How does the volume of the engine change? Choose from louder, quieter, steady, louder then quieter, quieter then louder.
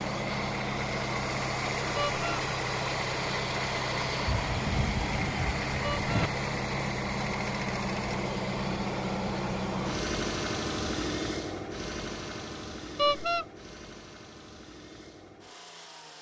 quieter.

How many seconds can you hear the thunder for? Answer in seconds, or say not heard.
2 s.